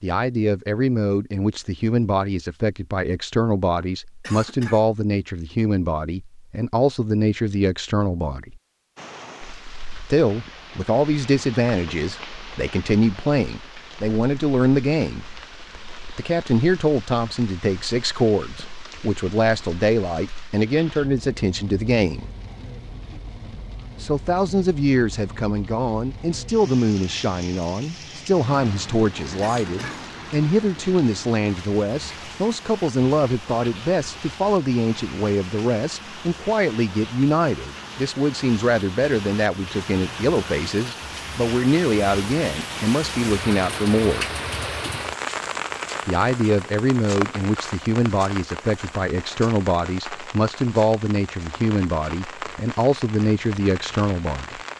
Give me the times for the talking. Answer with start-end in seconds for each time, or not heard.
0.0-8.6, 10.1-15.2, 16.1-22.3, 24.0-44.3, 46.0-54.6.